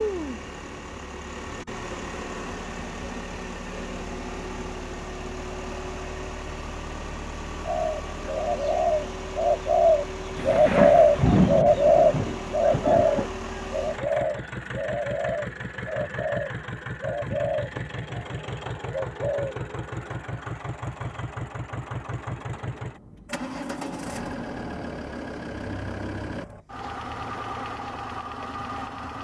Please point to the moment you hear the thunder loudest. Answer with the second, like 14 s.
11 s.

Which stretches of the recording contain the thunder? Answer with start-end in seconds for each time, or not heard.
10.3-13.3.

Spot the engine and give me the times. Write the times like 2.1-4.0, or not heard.
0.0-29.2.